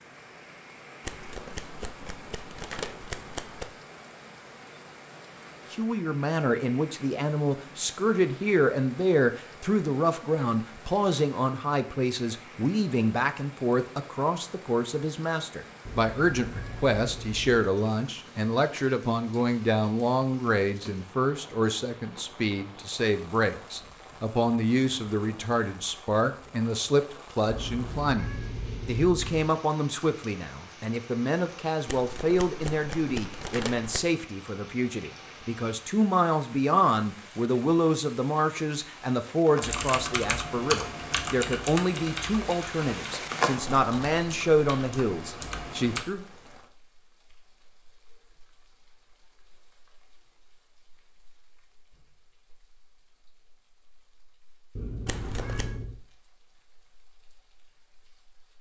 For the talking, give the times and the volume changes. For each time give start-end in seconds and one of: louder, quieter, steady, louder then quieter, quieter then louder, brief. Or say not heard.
5.7-46.2 steady.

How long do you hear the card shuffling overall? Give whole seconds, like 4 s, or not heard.
6 s.